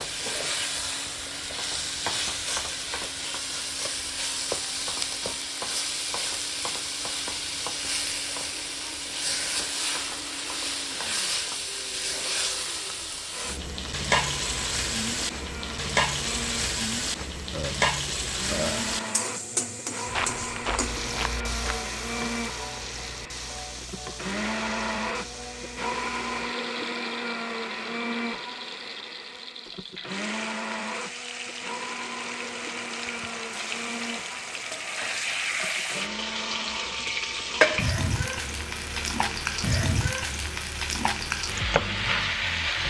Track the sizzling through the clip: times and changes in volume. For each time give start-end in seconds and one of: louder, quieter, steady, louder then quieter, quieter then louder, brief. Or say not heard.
0.0-42.8 quieter then louder.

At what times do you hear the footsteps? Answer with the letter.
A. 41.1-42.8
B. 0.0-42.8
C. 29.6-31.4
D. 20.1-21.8
D.